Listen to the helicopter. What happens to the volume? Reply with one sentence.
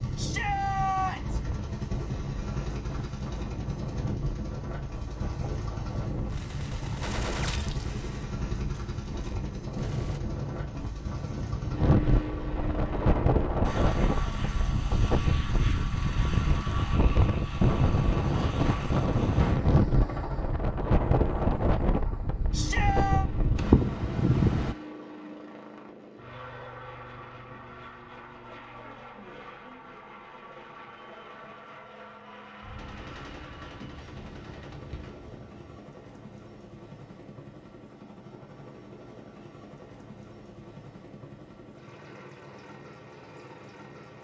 The volume of the helicopter goes down.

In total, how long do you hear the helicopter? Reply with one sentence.
You can hear the helicopter for 44 seconds altogether.